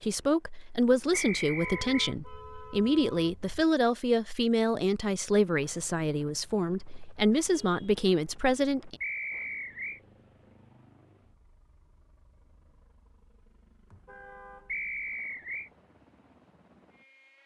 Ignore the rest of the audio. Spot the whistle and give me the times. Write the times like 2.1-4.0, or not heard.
1.1-2.1, 9.0-10.0, 14.7-15.7.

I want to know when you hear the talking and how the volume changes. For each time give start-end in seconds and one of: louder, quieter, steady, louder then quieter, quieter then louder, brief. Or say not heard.
0.0-8.9 steady.